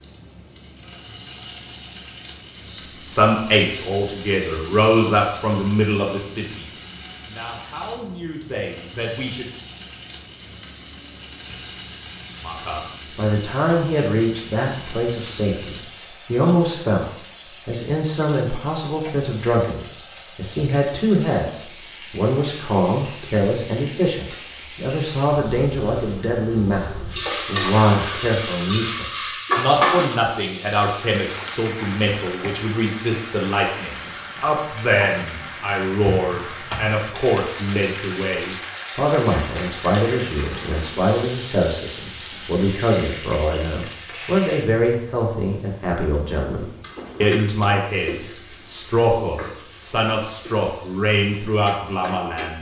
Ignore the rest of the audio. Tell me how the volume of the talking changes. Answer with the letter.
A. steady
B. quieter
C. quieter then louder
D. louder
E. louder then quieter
A.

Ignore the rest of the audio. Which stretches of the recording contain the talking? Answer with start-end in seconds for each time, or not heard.
2.6-9.4, 12.4-17.1, 17.6-52.5.